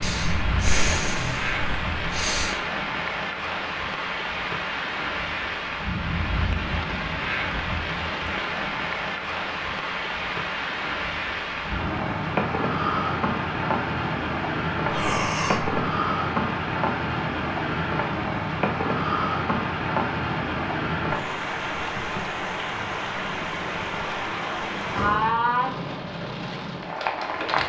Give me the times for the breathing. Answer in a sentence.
You can hear the breathing from 0.0 to 2.6 s, from 14.8 to 15.8 s and from 24.9 to 25.4 s.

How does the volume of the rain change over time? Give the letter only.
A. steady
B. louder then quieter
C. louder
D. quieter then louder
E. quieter
A.